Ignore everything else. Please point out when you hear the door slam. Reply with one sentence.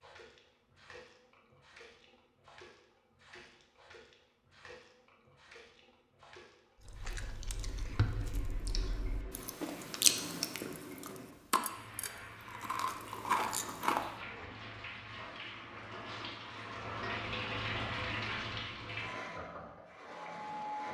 You can't hear the door slam here.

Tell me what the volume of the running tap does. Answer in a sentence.
The volume of the running tap goes up.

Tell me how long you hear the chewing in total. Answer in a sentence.
You can hear the chewing for 7 seconds altogether.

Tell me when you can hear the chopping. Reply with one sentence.
You can't hear the chopping here.